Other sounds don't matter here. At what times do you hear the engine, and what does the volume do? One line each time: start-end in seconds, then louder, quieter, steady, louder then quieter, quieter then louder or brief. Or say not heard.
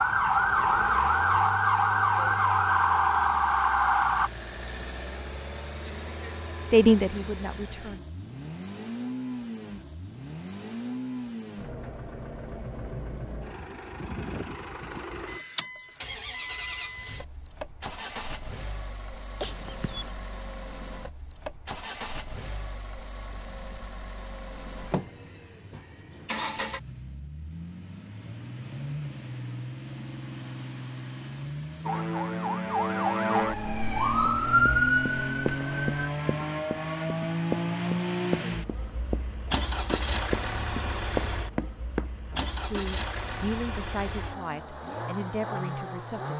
0.0-46.3 louder.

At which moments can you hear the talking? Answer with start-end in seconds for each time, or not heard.
6.6-8.1, 42.3-46.3.